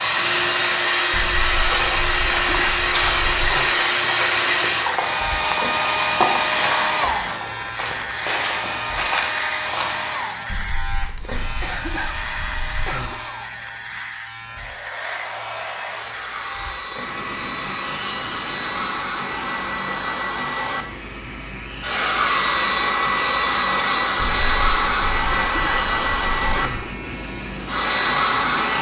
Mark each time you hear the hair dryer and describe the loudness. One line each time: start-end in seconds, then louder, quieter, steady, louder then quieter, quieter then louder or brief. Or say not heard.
0.0-28.7 quieter then louder.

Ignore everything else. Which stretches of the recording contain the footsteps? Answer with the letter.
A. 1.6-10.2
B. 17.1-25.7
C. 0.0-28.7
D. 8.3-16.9
A.